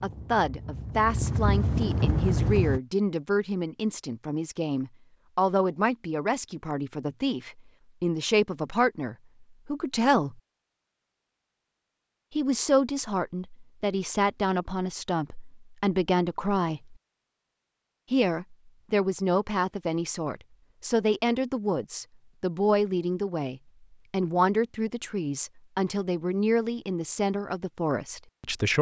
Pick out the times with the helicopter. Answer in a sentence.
The helicopter can be heard from 0.0 to 2.8 s.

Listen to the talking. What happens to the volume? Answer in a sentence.
The volume of the talking stays about the same.